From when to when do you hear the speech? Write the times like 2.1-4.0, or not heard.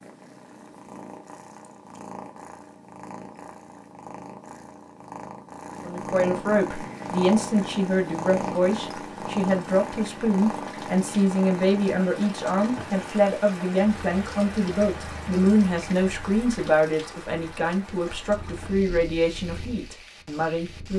5.8-20.9.